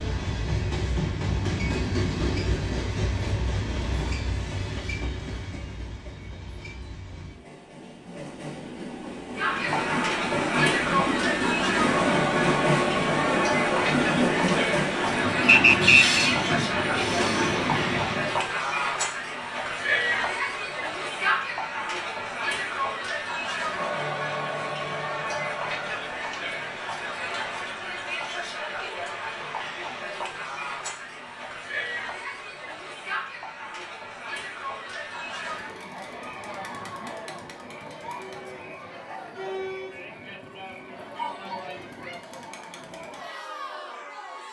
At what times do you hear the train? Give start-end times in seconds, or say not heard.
0.0-18.5.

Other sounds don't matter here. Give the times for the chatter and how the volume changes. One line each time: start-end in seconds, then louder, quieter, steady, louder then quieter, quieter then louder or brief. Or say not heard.
9.3-44.4 quieter.